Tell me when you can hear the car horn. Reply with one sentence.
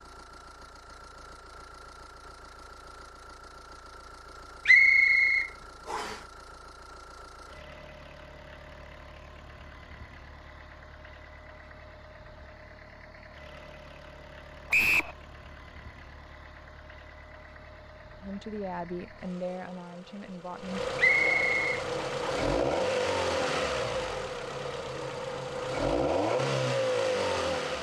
The car horn can't be heard in this clip.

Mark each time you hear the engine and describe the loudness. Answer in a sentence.
The engine can be heard from 0.0 to 27.7 s, getting louder.